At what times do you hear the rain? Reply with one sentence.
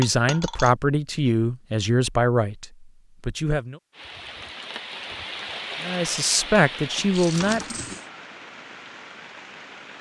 You can hear the rain from 3.9 to 9.9 s.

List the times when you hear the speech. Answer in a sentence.
The speech can be heard from 0.0 to 3.8 s and from 5.8 to 8.0 s.